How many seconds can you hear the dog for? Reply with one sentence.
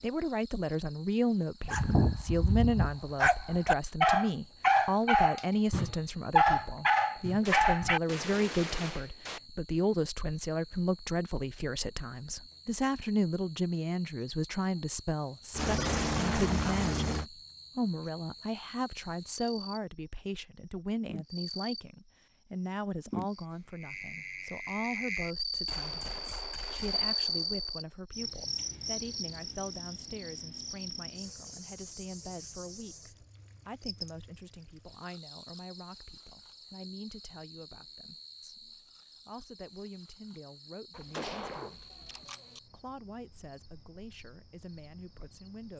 The dog can be heard for 6 seconds in total.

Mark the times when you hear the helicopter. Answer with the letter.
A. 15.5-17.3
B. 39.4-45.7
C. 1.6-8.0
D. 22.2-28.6
A.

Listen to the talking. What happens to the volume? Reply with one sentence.
The loudness of the talking goes down.